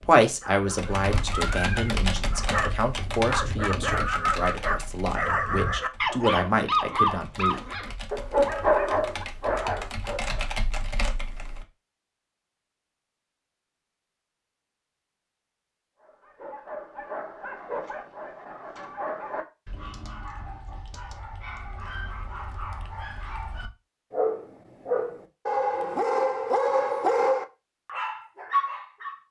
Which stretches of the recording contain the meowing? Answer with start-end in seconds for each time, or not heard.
1.1-1.9.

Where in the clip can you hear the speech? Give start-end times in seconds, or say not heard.
0.0-7.6.